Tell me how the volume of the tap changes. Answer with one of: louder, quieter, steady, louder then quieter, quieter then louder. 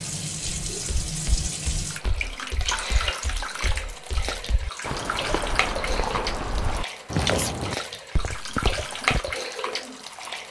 steady.